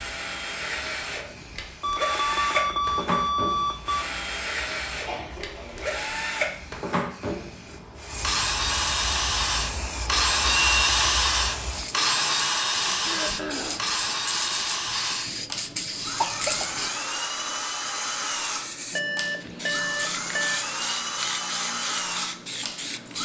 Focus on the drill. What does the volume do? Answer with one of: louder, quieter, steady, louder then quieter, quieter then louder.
louder then quieter.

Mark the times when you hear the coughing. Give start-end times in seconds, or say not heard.
5.0-6.0, 13.0-13.9, 16.1-16.9.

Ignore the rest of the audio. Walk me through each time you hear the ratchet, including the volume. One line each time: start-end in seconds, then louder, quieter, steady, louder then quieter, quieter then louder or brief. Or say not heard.
not heard.